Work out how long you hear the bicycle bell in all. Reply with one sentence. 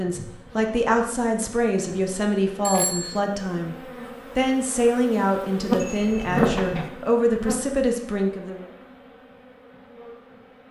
The bicycle bell can be heard for 2 seconds in total.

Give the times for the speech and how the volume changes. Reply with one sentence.
You can hear the speech from 0.0 to 8.7 s, at a steady volume.